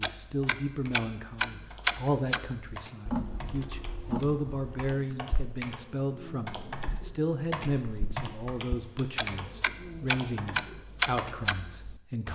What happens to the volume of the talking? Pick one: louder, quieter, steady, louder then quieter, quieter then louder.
steady.